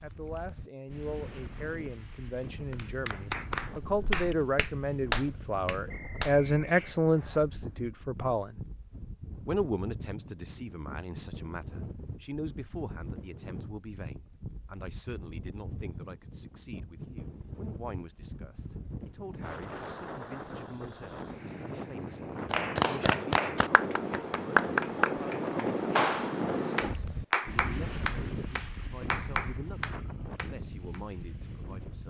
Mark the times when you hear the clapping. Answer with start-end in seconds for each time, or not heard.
2.7-6.9, 22.5-31.0.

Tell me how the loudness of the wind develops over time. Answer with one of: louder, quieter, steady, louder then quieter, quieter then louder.
louder.